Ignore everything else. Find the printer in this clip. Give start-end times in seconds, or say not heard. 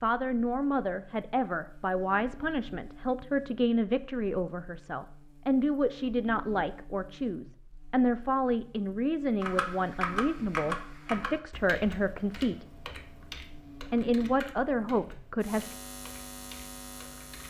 not heard.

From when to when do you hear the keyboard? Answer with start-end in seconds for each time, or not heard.
9.4-17.4.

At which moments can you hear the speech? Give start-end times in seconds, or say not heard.
0.0-12.7, 13.9-15.8.